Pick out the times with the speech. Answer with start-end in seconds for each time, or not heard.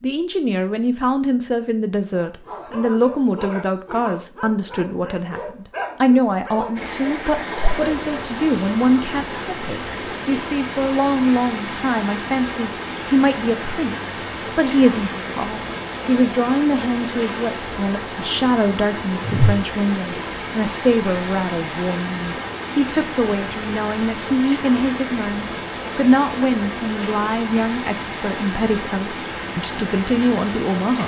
0.0-31.0.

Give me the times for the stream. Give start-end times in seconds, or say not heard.
6.8-31.0.